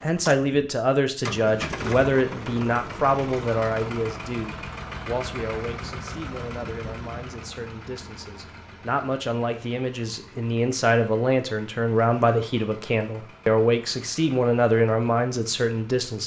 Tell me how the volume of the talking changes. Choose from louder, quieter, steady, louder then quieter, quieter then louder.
quieter then louder.